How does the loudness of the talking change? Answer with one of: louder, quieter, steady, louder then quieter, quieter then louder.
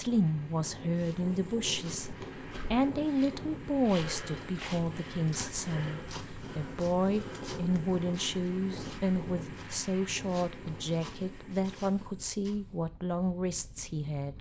steady.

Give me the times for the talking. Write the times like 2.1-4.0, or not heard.
0.0-14.3.